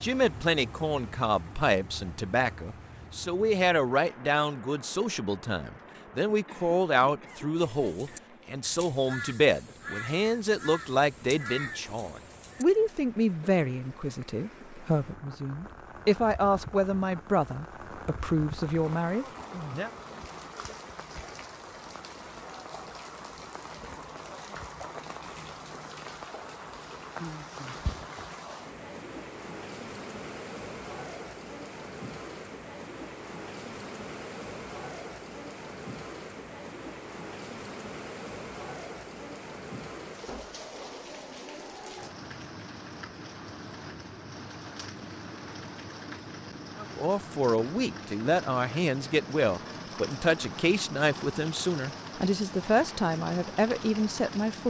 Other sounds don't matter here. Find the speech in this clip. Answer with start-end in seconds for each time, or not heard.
0.0-19.9, 46.8-54.6.